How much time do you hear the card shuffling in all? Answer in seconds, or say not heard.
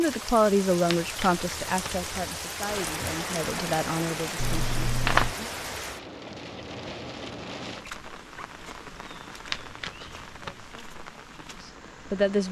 3 s.